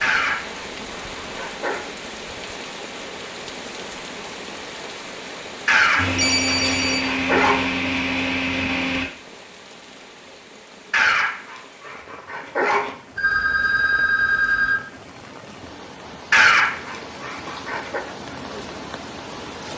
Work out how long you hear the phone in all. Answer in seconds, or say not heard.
3 s.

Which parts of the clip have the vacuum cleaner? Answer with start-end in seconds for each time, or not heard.
6.0-9.1.